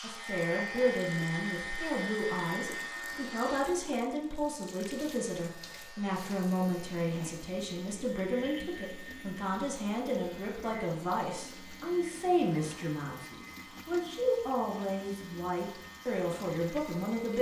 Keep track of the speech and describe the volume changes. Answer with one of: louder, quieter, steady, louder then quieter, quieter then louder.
steady.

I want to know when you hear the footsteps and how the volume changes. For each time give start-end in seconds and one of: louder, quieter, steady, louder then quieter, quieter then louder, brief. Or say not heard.
not heard.